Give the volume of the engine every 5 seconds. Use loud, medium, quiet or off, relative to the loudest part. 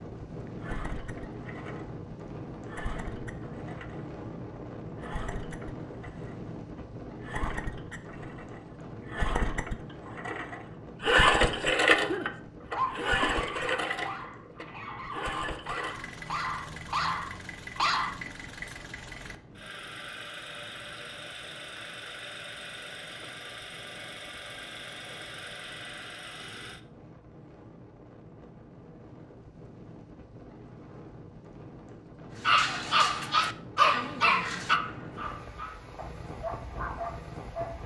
quiet, quiet, loud, quiet, quiet, quiet, off, off.